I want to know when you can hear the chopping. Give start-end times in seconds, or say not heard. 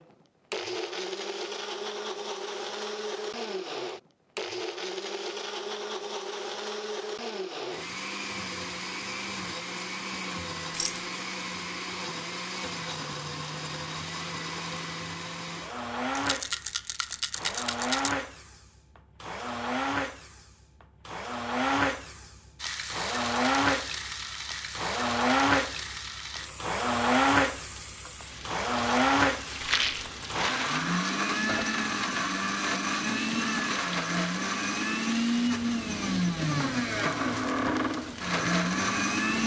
not heard.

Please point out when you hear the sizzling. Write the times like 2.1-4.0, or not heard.
22.6-39.4.